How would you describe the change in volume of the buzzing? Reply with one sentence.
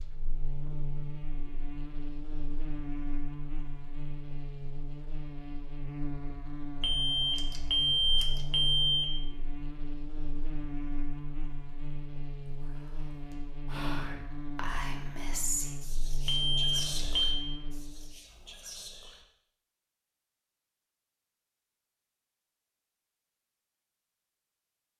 The volume of the buzzing stays about the same.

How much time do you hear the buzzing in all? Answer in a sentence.
The buzzing can be heard for 18 seconds in total.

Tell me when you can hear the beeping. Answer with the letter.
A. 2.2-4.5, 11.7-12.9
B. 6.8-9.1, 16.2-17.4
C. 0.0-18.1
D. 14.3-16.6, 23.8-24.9
B.